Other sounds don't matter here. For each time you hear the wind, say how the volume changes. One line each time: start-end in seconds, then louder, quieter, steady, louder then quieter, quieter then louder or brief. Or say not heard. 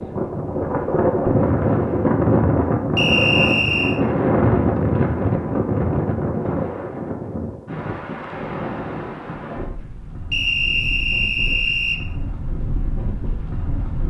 0.0-14.0 quieter.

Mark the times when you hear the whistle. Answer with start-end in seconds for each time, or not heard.
3.0-4.0, 10.3-12.0.